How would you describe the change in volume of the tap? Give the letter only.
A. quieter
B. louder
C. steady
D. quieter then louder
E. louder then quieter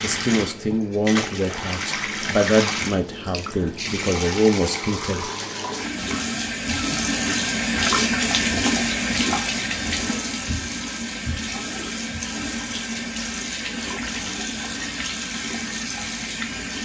E.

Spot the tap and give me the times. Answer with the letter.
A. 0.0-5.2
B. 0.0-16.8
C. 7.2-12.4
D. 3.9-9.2
B.